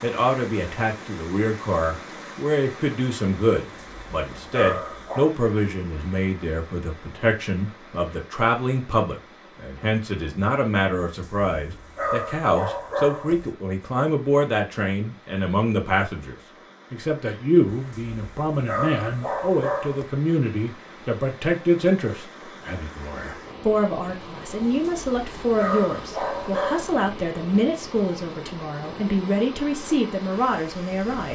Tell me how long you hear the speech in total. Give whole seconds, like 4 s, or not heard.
31 s.